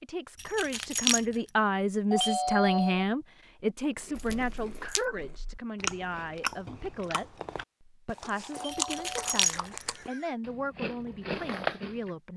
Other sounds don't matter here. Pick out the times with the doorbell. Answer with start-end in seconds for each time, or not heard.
2.1-3.0, 8.5-10.3.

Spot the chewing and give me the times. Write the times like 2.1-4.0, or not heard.
4.0-12.1.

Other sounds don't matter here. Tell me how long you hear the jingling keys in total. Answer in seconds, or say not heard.
3 s.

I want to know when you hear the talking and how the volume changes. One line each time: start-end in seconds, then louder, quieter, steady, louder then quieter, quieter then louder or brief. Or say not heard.
0.0-12.3 quieter.